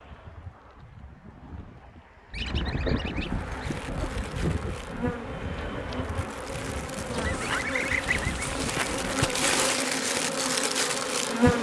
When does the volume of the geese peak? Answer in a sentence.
The volume of the geese peaks at 8 seconds.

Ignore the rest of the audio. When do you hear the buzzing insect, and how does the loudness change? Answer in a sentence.
You can hear the buzzing insect from 3.2 to 11.5 s, getting louder.